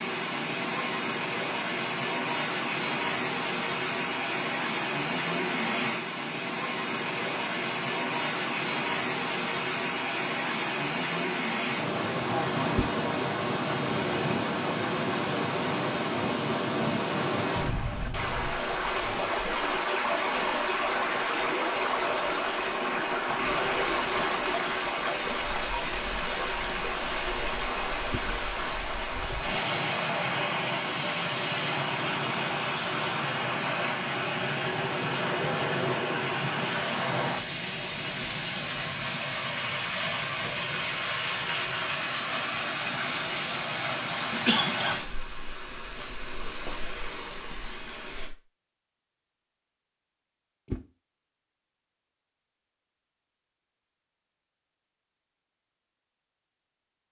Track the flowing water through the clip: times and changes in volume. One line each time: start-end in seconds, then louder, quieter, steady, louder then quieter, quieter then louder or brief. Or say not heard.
0.0-48.3 steady.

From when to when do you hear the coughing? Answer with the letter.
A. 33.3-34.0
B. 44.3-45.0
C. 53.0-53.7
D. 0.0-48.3
B.